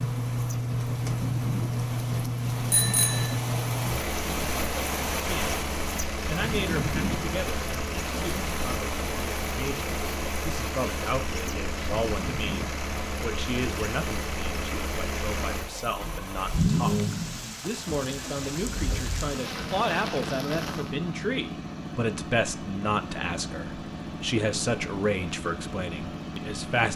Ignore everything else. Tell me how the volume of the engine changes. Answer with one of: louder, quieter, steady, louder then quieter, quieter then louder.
quieter.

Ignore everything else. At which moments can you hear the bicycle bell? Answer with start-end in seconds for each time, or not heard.
2.7-3.4.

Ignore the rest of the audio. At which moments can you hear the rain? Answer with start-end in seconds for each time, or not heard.
0.0-20.9.